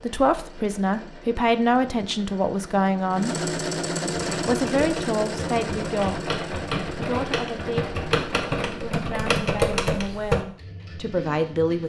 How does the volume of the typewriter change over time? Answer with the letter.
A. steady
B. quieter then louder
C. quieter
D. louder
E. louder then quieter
D.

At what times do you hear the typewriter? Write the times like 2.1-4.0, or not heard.
4.1-10.4.